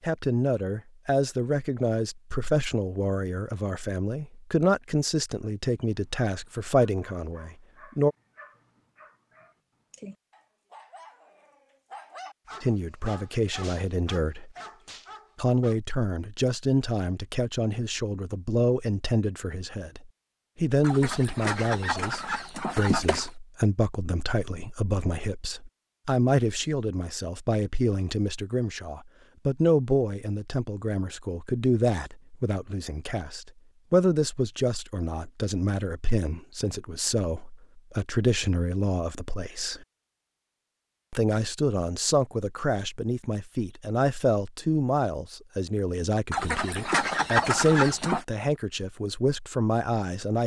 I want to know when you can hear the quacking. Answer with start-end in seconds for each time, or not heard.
20.8-23.3, 46.3-48.2.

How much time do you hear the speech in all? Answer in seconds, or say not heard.
44 s.